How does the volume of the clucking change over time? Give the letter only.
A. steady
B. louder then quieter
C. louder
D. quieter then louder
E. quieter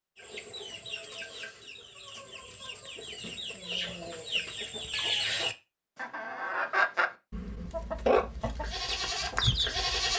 C.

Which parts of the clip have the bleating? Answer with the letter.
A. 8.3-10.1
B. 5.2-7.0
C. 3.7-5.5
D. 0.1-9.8
A.